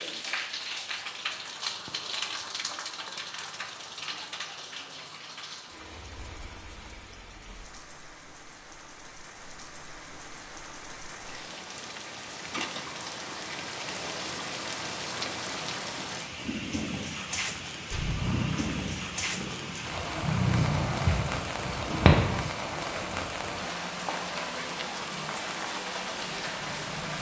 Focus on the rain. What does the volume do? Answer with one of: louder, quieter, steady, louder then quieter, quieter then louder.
quieter then louder.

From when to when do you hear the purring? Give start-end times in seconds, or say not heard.
17.9-22.4.